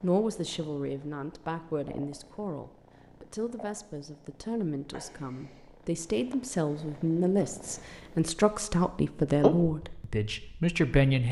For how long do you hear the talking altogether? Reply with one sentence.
The talking can be heard for 11 seconds in total.